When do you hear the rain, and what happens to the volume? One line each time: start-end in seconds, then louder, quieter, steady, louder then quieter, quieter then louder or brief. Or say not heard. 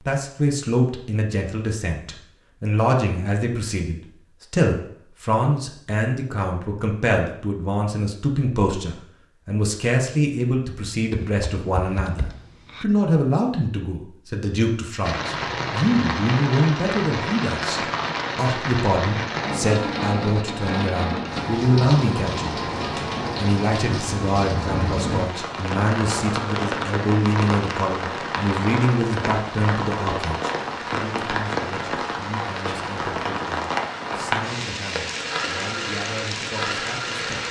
15.0-37.4 steady.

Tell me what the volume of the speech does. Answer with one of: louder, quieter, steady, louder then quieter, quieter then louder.
quieter.